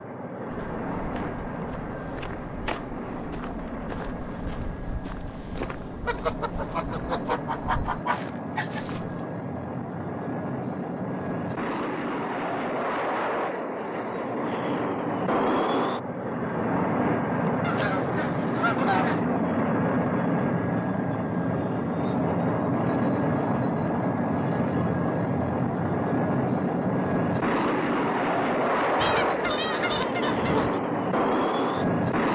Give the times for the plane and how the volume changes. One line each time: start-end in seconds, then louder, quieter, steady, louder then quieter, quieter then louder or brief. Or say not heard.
0.0-32.3 louder.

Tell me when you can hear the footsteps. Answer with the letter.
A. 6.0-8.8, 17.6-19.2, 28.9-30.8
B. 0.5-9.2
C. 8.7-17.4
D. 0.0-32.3
B.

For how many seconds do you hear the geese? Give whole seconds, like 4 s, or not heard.
6 s.